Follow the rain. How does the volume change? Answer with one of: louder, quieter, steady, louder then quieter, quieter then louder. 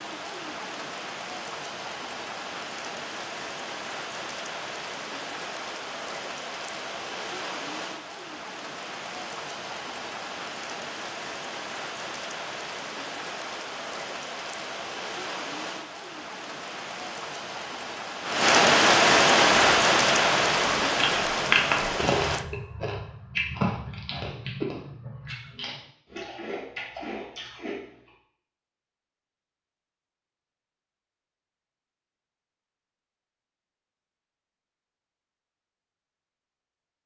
louder.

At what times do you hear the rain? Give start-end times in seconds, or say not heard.
0.0-22.4.